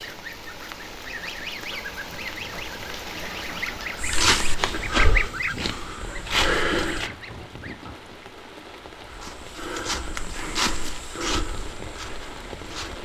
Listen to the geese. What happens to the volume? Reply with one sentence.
The loudness of the geese goes up, then down.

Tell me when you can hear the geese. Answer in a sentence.
You can hear the geese from 0.0 to 8.0 s.